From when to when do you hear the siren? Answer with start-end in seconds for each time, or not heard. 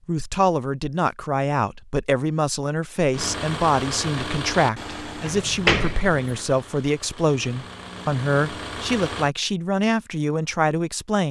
not heard.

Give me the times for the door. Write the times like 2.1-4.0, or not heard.
5.2-6.4.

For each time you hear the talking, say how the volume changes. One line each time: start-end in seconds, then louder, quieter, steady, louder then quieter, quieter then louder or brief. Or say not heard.
0.1-11.2 steady.